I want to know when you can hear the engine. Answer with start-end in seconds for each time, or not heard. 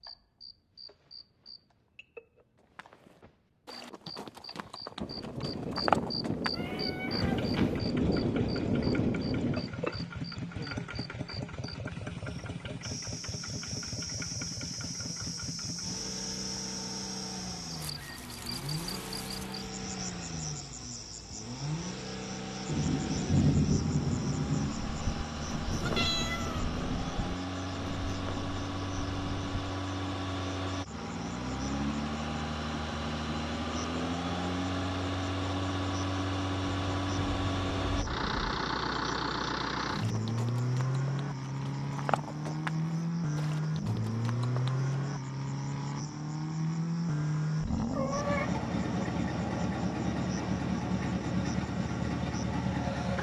7.2-53.1.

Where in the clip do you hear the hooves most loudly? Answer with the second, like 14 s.
6 s.